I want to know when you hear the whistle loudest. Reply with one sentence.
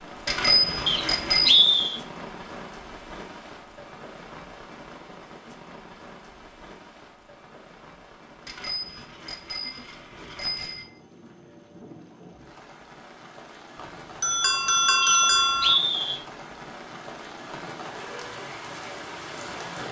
The loudest moment of the whistle is at 2 seconds.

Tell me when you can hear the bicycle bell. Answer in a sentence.
You can hear the bicycle bell from 0.2 to 1.6 s, from 8.4 to 10.9 s and from 13.8 to 15.8 s.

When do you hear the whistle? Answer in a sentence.
You can hear the whistle from 0.8 to 2.0 s and from 15.0 to 16.2 s.